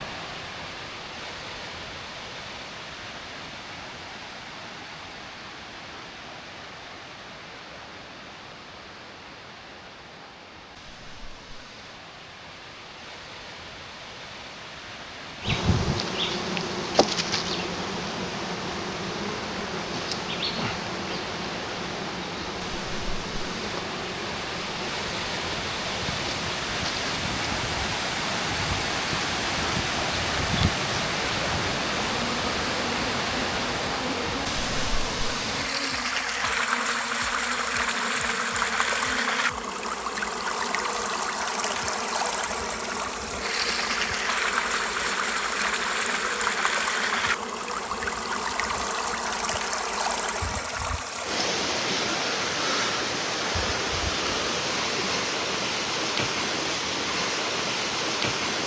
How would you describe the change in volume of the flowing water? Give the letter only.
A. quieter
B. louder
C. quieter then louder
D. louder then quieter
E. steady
B.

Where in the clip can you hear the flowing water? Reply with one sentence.
You can hear the flowing water from 0.0 to 58.6 s.